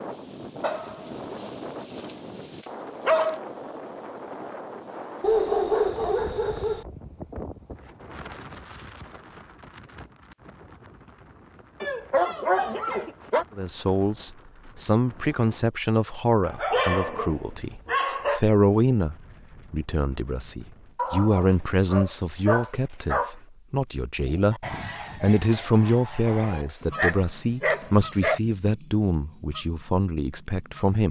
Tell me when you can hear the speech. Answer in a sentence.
The speech can be heard from 13.6 to 31.0 s.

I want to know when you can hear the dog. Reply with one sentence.
The dog can be heard from 0.6 to 3.4 s, from 5.2 to 6.8 s, from 11.8 to 13.4 s, from 16.4 to 18.4 s, from 20.9 to 23.4 s and from 26.4 to 28.4 s.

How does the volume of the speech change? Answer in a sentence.
The volume of the speech stays about the same.